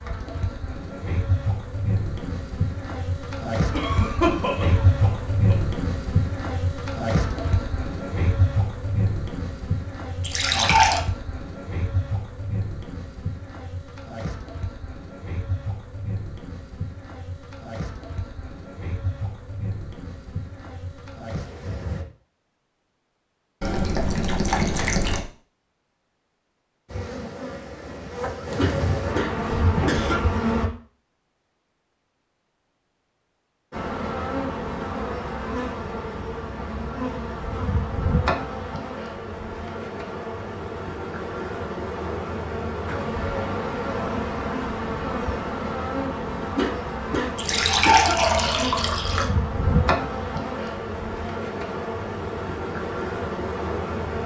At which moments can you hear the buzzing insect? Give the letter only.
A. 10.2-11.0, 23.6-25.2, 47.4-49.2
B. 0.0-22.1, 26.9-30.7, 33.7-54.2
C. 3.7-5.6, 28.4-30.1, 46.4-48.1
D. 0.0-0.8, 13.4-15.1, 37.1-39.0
B.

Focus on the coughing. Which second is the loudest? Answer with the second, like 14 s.
4 s.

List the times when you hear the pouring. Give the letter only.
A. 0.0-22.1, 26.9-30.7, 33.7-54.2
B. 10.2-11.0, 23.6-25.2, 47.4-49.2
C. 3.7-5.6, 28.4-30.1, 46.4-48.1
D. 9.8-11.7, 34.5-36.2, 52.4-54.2
B.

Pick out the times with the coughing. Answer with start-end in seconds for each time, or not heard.
3.7-5.6, 28.4-30.1, 46.4-48.1.